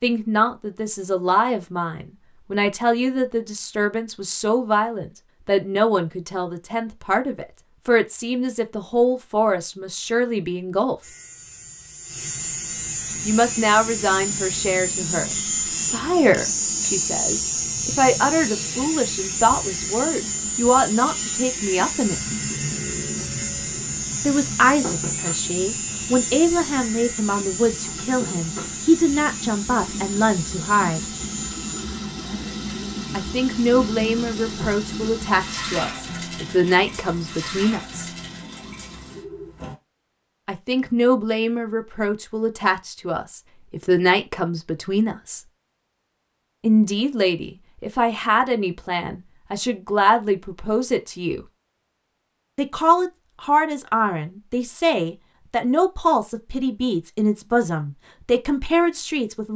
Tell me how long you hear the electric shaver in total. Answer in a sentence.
The electric shaver can be heard for 21 seconds in total.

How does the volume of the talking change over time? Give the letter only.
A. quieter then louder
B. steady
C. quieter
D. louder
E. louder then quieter
B.